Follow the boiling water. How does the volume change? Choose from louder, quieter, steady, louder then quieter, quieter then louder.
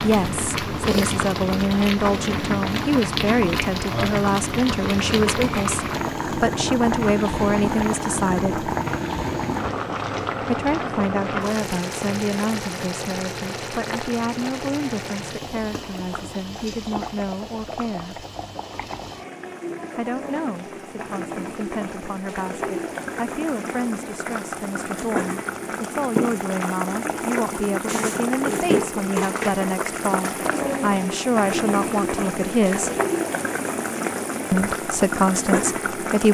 quieter then louder.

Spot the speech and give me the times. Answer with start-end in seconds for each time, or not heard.
0.0-8.7, 10.4-18.2, 19.9-32.9, 34.5-36.3.